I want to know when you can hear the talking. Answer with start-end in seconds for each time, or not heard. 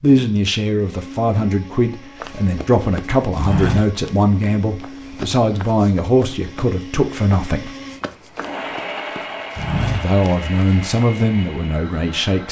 0.0-7.7, 9.8-12.4.